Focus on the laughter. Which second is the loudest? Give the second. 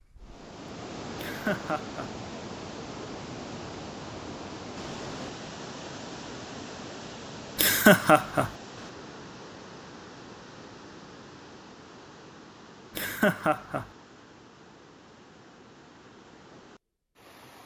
8 s.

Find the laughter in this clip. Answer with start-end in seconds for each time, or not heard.
1.1-2.1, 7.5-8.5, 12.9-13.8.